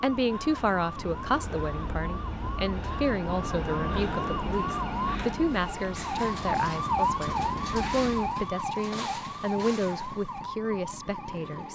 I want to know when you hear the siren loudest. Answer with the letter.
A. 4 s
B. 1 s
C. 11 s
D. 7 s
D.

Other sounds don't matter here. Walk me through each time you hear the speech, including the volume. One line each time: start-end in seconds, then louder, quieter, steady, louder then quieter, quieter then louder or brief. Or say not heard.
0.0-11.6 steady.